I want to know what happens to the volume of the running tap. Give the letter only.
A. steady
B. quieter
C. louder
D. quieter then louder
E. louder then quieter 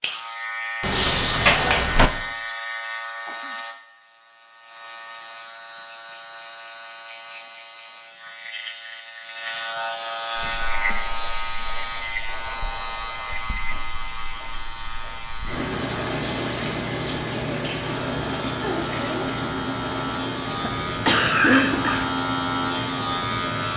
E.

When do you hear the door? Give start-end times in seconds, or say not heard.
0.8-2.1.